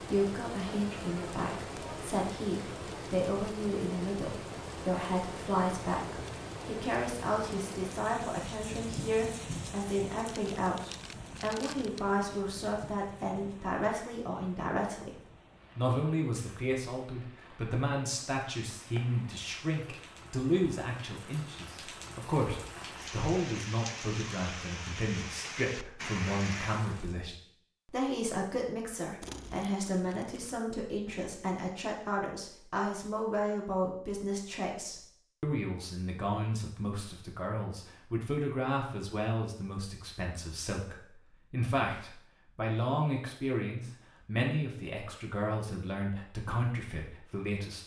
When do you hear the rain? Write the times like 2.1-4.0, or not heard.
0.0-27.1.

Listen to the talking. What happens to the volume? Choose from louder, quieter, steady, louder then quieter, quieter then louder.
steady.